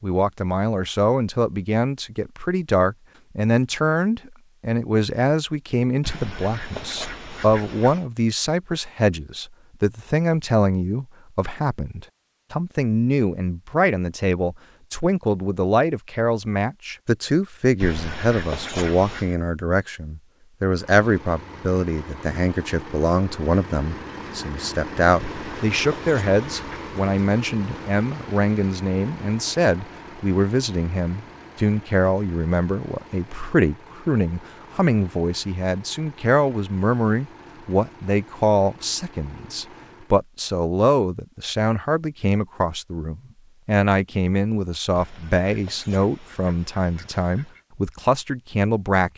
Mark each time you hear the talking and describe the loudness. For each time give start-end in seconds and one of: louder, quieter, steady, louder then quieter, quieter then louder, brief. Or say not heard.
0.0-49.1 steady.